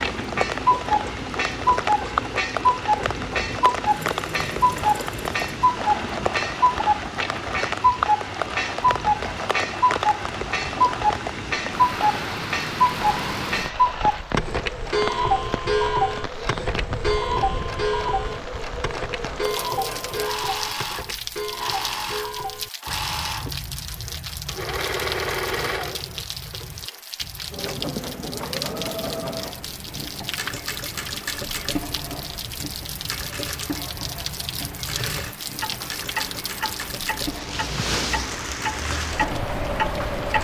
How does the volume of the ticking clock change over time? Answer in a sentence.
The loudness of the ticking clock goes down, then up.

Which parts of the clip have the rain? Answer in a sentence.
You can hear the rain from 0.0 to 40.3 s.